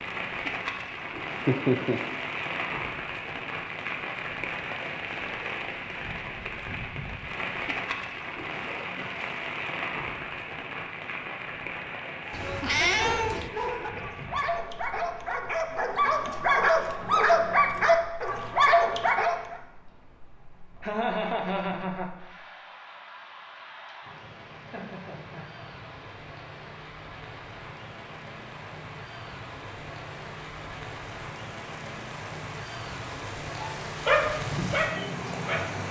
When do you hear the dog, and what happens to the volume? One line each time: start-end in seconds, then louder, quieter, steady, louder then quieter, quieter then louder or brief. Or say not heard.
12.2-19.6 louder
33.5-35.8 brief.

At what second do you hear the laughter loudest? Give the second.
2 s.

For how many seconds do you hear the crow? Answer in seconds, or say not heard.
not heard.